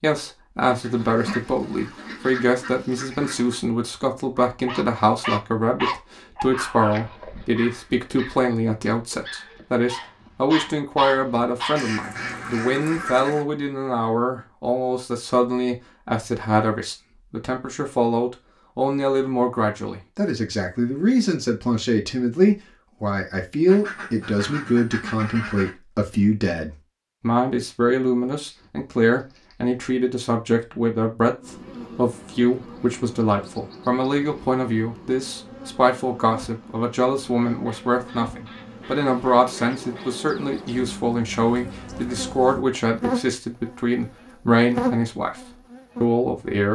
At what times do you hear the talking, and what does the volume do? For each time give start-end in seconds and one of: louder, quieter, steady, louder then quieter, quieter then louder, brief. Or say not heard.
0.0-46.6 steady.